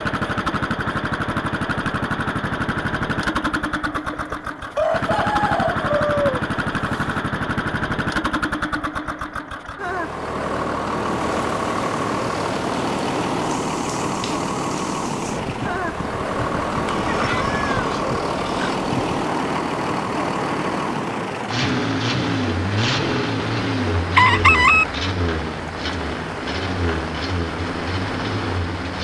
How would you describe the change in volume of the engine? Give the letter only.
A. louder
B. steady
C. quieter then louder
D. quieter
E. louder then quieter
B.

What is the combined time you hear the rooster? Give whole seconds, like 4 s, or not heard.
4 s.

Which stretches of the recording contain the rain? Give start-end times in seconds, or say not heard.
11.1-28.9.